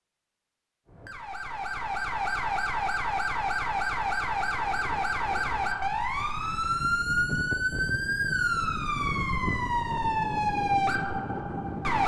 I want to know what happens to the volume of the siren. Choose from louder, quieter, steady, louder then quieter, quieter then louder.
steady.